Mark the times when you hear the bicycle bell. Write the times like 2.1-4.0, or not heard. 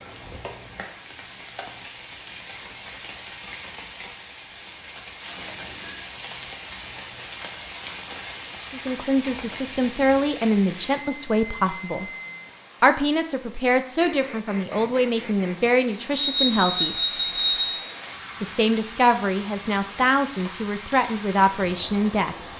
5.3-6.0, 10.9-12.6, 16.1-17.8.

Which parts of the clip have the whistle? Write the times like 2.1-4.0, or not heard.
not heard.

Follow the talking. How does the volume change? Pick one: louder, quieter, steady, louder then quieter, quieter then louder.
steady.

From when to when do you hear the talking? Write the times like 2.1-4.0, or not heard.
8.7-12.1, 12.8-16.9, 18.4-22.4.